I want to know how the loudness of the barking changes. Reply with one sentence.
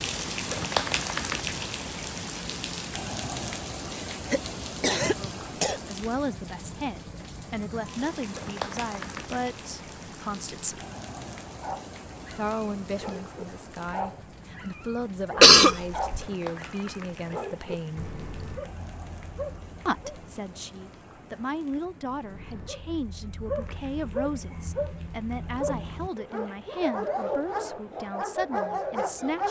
The volume of the barking goes up.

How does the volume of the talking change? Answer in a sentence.
The loudness of the talking stays about the same.